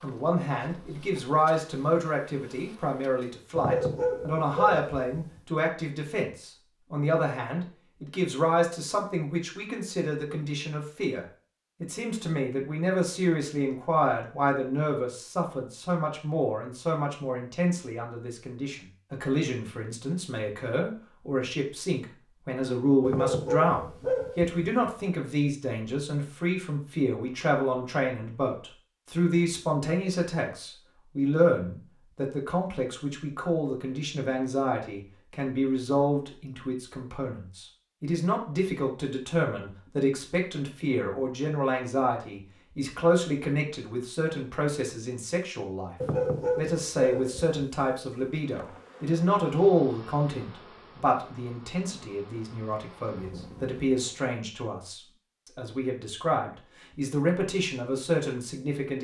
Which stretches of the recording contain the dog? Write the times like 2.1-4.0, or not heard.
3.5-5.4, 23.0-24.9, 46.0-47.6.